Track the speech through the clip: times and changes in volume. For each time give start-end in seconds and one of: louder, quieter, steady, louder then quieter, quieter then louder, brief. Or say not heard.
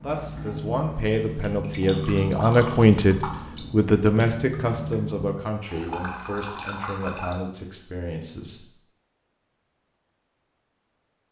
0.0-8.7 louder then quieter.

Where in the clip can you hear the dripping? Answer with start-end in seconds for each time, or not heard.
0.0-7.4.